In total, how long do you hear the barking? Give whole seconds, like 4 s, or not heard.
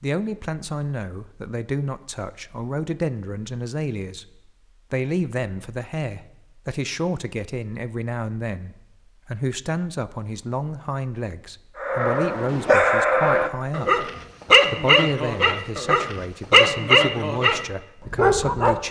7 s.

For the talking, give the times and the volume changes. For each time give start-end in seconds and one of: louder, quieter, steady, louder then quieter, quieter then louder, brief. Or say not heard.
0.0-18.8 steady.